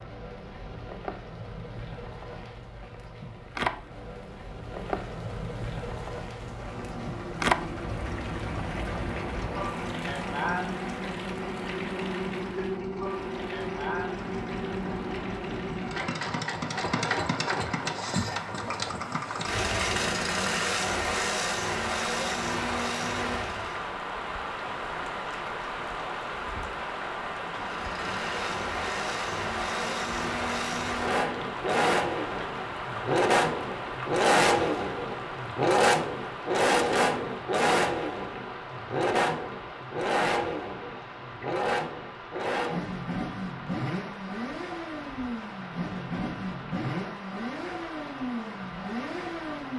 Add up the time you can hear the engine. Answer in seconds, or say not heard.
40 s.